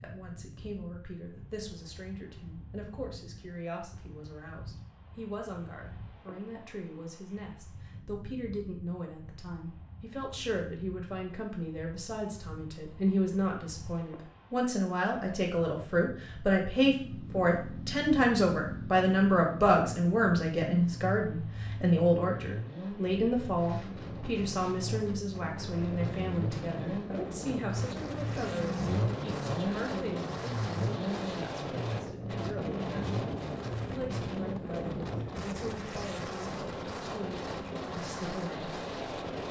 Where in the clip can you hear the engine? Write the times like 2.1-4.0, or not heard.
16.8-35.2.